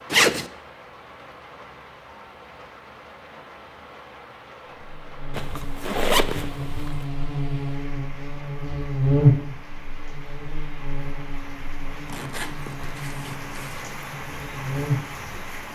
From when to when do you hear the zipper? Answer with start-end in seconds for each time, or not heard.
0.1-0.5, 5.3-7.0, 12.1-13.9.